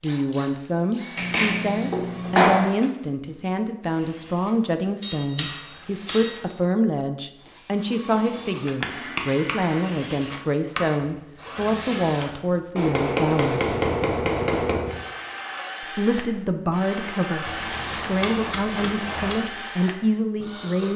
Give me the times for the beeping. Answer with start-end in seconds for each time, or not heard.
not heard.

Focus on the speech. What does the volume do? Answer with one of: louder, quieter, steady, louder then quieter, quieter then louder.
steady.